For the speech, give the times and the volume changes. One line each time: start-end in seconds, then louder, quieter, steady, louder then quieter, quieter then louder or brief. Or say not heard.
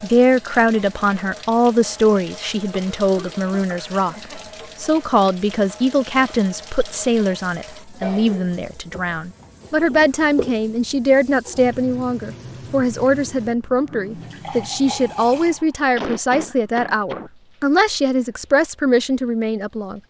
0.0-20.0 steady.